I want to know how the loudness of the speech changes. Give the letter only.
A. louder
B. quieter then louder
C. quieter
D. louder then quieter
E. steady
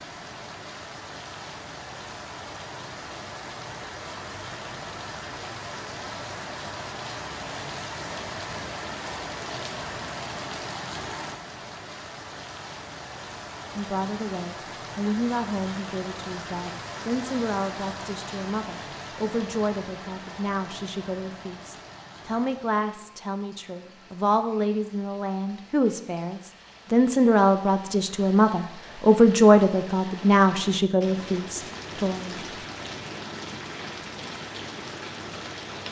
A.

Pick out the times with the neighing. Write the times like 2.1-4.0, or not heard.
not heard.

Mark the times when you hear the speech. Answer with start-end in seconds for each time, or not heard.
13.8-32.4.